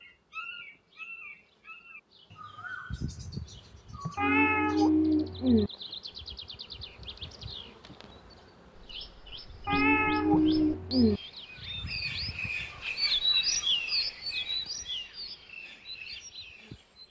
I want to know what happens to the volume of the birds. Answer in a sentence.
The volume of the birds goes up.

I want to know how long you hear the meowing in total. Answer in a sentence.
The meowing can be heard for 3 seconds in total.